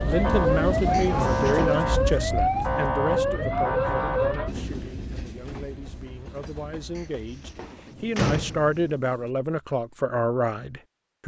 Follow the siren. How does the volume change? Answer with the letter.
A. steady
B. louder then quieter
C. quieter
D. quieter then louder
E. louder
A.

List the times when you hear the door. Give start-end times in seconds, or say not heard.
0.9-1.8, 7.0-8.9.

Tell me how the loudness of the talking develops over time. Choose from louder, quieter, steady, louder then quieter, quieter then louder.
quieter then louder.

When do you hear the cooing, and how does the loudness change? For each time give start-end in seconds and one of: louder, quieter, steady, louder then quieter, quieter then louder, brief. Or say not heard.
not heard.